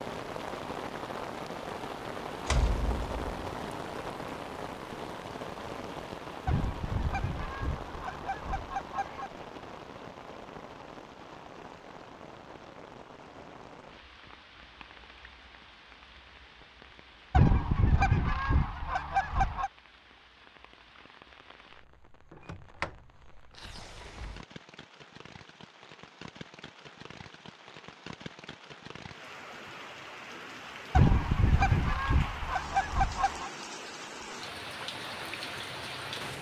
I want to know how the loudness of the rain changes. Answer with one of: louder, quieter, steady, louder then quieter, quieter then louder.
quieter then louder.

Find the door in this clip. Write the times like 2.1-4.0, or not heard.
2.5-3.5, 22.3-22.9, 23.6-24.4.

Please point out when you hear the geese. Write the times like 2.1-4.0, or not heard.
6.5-9.3, 17.3-19.7, 30.9-33.5.